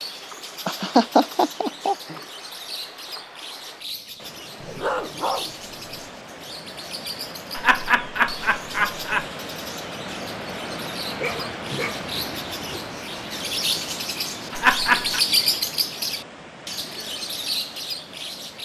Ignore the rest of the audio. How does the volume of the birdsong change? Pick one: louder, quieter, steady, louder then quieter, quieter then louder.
louder.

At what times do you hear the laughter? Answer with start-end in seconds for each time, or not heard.
0.7-2.1, 7.5-9.2, 14.5-15.2.